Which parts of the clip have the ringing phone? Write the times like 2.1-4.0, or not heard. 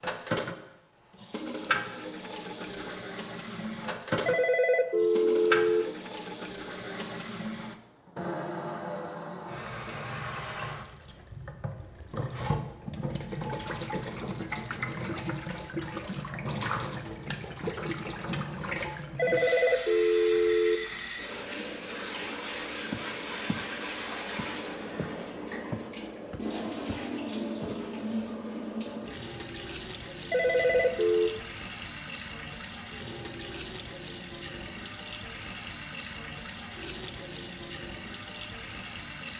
4.2-5.9, 19.1-20.9, 30.3-31.3.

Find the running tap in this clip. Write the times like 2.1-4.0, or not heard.
0.0-39.3.